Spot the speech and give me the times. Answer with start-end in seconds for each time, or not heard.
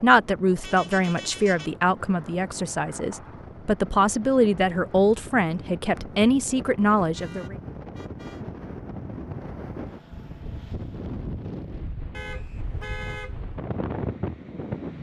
0.0-7.5.